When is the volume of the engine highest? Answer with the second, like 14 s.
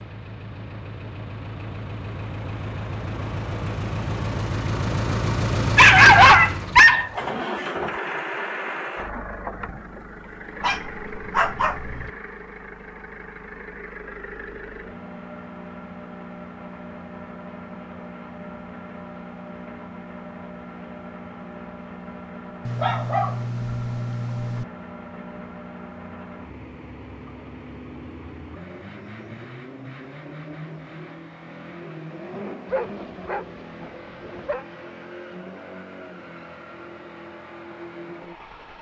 6 s.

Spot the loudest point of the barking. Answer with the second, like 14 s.
6 s.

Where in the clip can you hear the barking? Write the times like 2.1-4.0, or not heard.
5.8-7.2, 10.6-12.1, 22.6-24.6, 32.7-34.6.